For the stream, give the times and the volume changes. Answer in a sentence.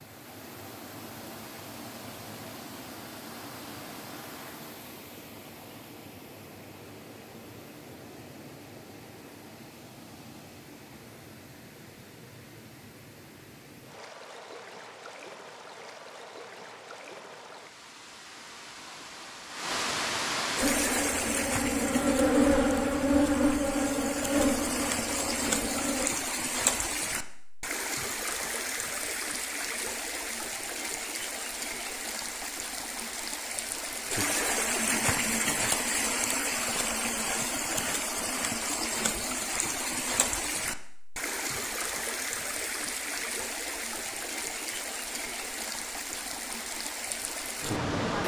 You can hear the stream from 0.0 to 48.2 s, getting louder.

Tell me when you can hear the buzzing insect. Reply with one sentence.
The buzzing insect can be heard from 20.6 to 26.1 s.